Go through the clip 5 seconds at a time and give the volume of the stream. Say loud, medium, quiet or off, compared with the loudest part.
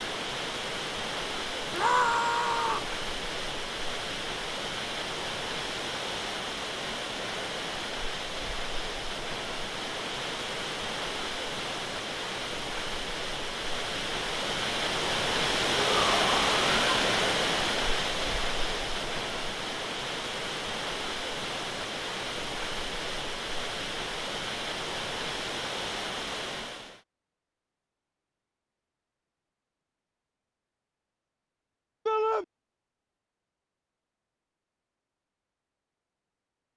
medium, medium, medium, loud, medium, medium, off, off.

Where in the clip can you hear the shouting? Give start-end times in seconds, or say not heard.
1.7-2.9, 15.8-16.9, 32.0-32.5.